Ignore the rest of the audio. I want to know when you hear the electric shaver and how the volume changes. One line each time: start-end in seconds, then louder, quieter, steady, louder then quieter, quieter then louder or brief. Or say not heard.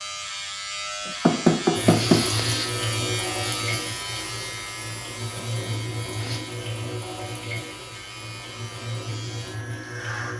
0.0-10.3 quieter.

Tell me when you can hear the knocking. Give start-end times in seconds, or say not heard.
1.2-2.2.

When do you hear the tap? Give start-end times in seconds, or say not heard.
1.8-10.3.